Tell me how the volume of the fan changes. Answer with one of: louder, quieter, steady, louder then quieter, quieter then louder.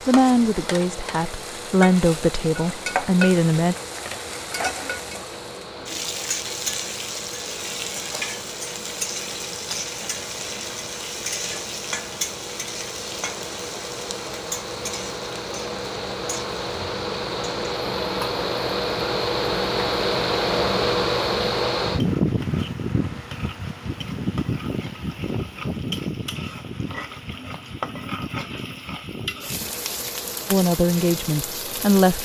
louder then quieter.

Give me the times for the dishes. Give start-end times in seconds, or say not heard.
not heard.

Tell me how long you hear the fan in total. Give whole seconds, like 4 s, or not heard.
32 s.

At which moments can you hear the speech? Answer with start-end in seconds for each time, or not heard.
0.1-3.8, 30.5-32.2.